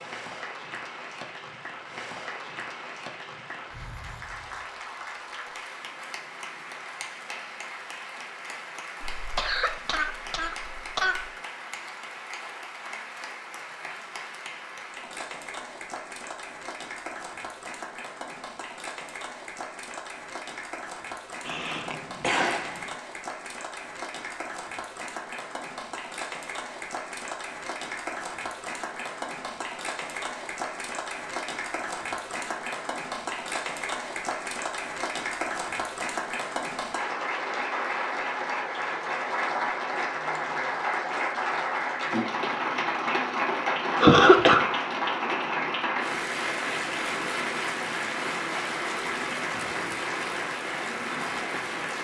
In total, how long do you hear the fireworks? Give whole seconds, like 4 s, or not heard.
not heard.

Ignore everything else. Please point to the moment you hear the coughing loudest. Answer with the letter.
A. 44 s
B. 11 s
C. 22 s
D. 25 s
A.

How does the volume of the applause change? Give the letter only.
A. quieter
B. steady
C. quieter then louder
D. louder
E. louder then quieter
D.